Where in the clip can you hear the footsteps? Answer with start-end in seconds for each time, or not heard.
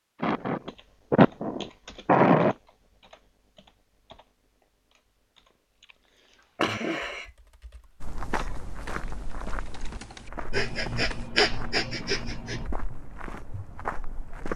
8.0-14.5.